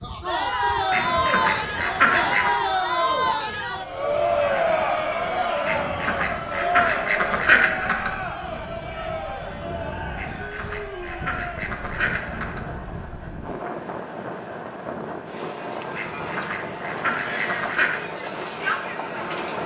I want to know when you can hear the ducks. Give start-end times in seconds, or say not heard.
0.9-2.5, 5.7-8.1, 10.2-12.6, 15.9-18.0.